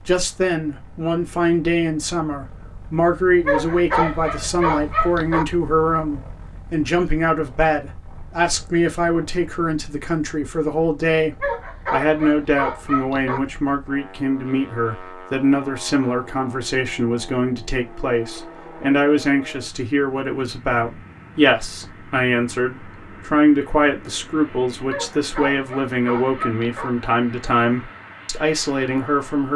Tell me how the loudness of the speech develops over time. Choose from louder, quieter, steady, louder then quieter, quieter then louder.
steady.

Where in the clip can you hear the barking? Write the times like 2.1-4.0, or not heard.
3.5-5.5, 11.4-13.4, 24.9-26.9.